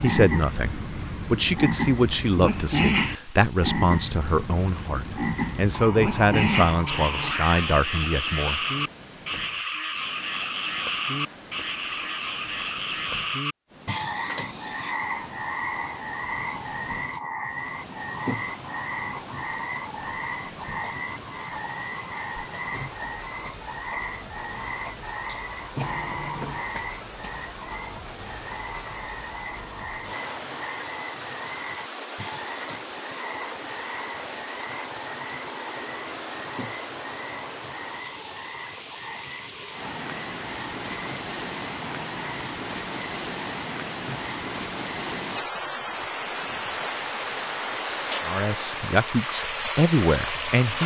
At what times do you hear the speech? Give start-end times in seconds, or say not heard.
0.0-8.6, 48.2-50.8.